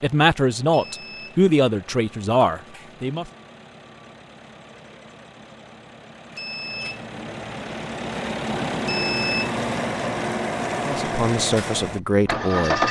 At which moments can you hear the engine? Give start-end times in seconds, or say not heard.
0.0-12.8.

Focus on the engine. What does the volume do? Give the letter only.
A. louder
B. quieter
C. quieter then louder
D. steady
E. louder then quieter
A.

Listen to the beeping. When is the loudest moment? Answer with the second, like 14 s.
9 s.